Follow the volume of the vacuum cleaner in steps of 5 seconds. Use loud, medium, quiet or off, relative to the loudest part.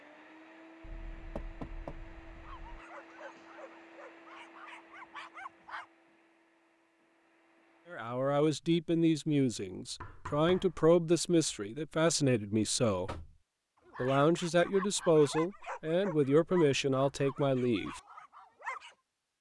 loud, medium, off, off.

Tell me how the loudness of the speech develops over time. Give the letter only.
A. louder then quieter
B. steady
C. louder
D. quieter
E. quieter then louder
B.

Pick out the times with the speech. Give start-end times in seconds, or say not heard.
7.9-13.1, 13.9-18.0.